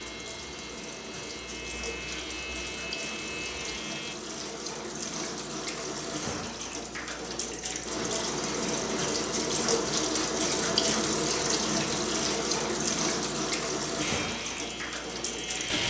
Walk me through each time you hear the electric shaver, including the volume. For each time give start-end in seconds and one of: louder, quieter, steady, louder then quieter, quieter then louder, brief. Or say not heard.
0.0-4.2 louder
14.0-15.8 brief.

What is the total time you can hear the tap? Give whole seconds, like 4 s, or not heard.
16 s.